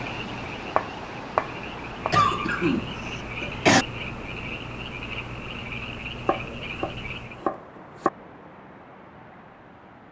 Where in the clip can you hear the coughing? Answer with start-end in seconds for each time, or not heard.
2.1-3.9.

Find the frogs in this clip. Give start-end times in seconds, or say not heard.
0.0-7.5.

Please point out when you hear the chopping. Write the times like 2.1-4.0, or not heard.
0.8-2.1, 6.2-8.1.